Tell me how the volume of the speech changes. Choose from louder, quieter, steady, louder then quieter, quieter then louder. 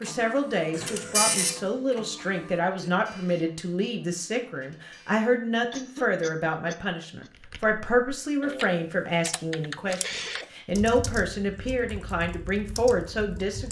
steady.